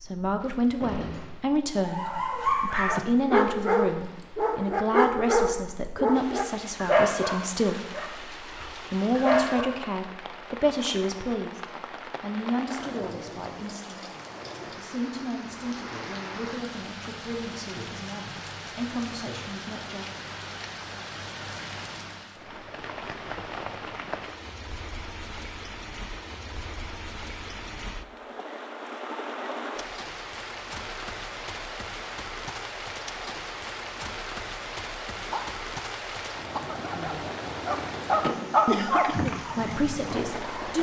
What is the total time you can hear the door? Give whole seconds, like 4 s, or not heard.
2 s.